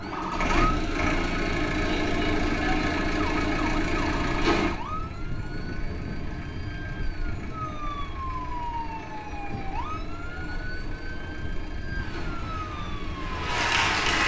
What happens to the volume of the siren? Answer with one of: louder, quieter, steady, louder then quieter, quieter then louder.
steady.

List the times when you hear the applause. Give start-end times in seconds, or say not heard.
11.9-14.2.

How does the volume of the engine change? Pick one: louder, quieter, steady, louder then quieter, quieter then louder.
quieter.